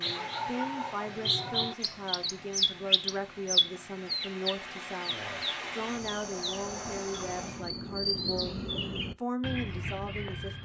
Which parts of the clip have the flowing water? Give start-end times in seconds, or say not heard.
0.0-7.7.